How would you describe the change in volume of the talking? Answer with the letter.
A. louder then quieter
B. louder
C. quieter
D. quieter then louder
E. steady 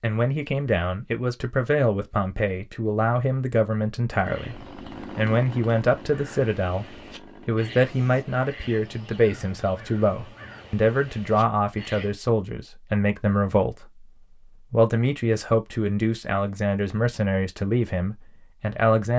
E.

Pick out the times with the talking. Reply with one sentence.
The talking can be heard from 0.0 to 19.1 s.